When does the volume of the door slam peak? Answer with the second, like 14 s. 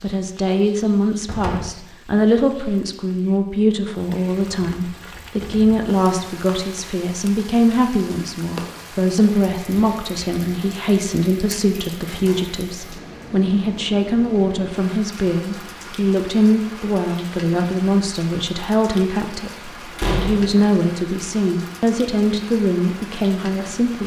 20 s.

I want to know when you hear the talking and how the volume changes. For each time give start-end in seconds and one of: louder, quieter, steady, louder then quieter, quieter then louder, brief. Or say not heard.
0.0-24.0 steady.